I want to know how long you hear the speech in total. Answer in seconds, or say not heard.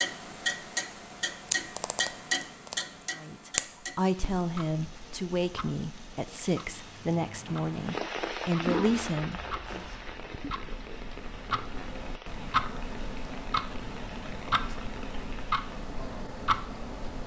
7 s.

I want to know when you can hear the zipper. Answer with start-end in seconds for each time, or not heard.
8.6-10.1.